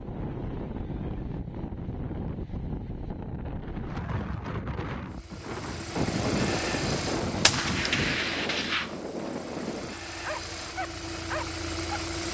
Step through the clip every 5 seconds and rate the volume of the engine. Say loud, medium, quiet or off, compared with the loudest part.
off, loud, loud.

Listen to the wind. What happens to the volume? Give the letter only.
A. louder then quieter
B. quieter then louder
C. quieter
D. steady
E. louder
D.